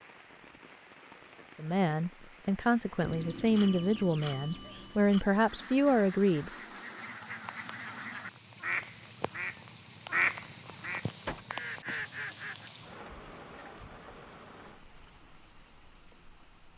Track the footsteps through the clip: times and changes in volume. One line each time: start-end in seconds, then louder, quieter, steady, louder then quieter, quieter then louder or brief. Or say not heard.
not heard.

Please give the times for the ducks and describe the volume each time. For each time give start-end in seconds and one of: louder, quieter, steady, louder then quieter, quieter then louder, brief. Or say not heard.
5.3-12.7 louder then quieter.